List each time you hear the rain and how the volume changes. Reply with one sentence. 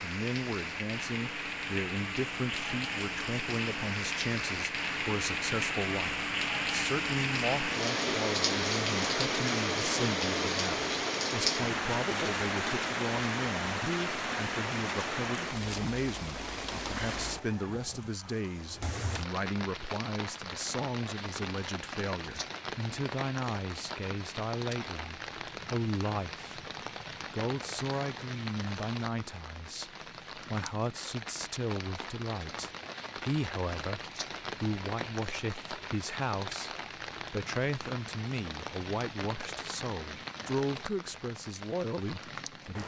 You can hear the rain from 0.0 to 42.8 s, getting quieter.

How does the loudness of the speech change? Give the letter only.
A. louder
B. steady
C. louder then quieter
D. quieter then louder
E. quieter
B.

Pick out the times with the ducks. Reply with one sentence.
You can't hear the ducks here.